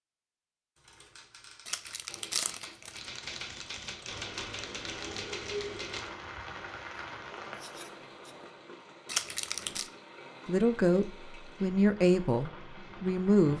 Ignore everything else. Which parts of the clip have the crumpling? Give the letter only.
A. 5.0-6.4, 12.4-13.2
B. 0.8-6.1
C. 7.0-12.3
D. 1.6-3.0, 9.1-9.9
D.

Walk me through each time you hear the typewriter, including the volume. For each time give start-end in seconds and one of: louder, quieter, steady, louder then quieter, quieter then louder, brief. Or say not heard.
0.8-6.1 louder.